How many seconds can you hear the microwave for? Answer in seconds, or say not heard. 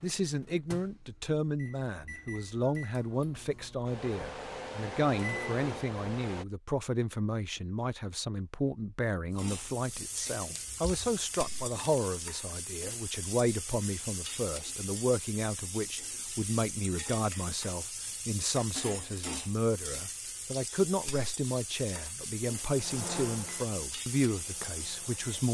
9 s.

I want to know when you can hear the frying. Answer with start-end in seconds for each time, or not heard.
9.3-25.4.